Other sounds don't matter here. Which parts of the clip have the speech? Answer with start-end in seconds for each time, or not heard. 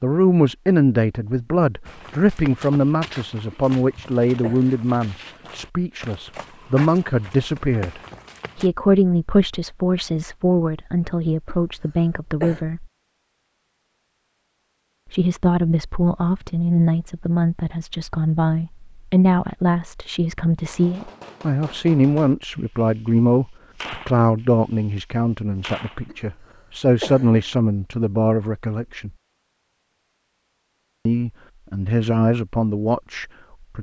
0.0-12.8, 15.1-29.1, 31.1-33.7.